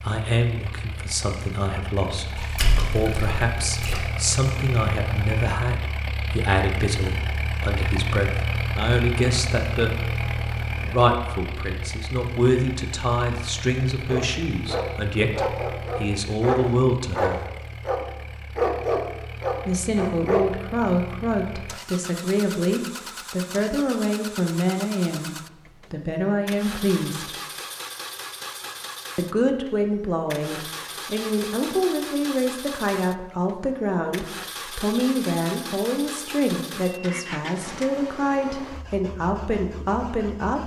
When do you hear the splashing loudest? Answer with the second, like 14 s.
3 s.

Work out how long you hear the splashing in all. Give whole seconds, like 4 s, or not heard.
2 s.